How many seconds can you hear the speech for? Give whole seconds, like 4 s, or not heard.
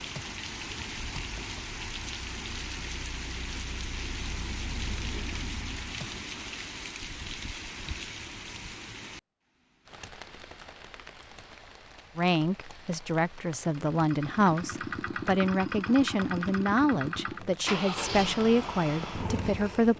8 s.